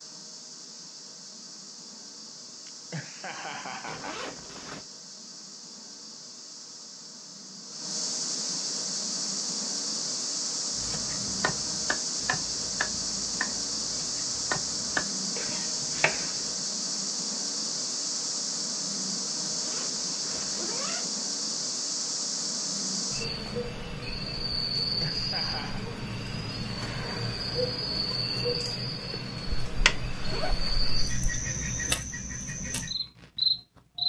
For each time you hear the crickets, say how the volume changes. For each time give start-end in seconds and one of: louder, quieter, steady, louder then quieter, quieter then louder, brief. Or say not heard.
0.0-34.0 louder.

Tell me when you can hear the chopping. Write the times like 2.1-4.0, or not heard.
10.8-16.4.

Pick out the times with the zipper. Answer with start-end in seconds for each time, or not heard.
3.9-4.8, 19.4-21.1, 29.4-31.4.